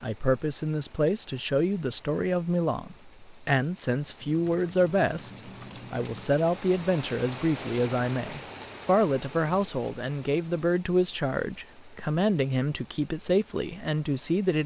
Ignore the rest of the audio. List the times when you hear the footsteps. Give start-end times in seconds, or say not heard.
not heard.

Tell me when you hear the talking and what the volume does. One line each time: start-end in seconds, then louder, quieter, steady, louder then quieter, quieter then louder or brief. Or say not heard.
0.0-14.6 steady.